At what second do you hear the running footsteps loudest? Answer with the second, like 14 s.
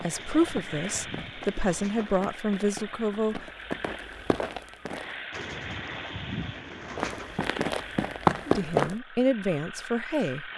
8 s.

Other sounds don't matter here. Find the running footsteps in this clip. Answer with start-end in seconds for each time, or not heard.
0.0-5.2, 7.0-8.9.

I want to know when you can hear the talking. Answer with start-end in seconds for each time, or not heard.
0.0-3.5, 8.4-10.5.